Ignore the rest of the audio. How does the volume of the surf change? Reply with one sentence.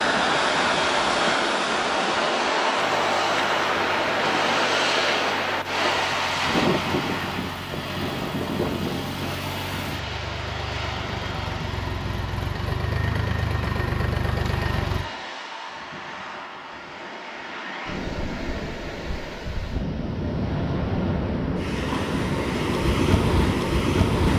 The loudness of the surf goes down, then up.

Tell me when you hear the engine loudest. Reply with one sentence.
The volume of the engine peaks at 14 seconds.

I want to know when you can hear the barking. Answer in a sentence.
You can't hear the barking here.